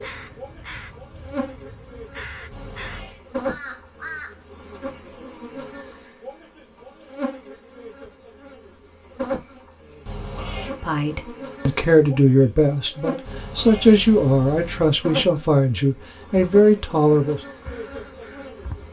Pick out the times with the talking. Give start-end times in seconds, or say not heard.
10.7-17.4.